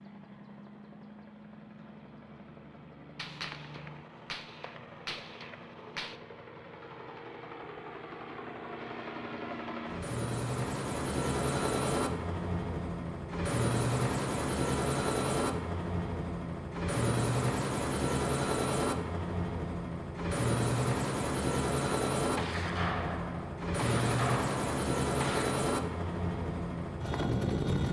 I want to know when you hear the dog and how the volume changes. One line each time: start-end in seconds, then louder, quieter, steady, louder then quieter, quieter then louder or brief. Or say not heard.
not heard.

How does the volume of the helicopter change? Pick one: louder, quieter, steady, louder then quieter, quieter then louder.
louder.